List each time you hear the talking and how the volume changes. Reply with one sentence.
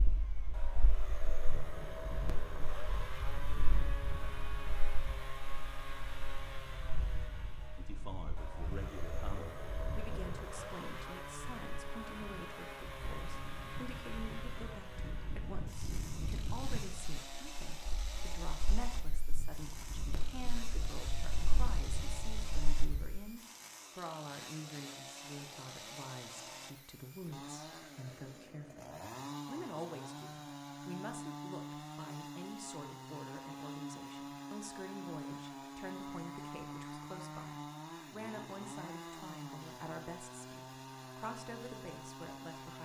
The talking can be heard from 7.8 to 42.7 s, at a steady volume.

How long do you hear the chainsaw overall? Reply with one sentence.
You can hear the chainsaw for 43 seconds altogether.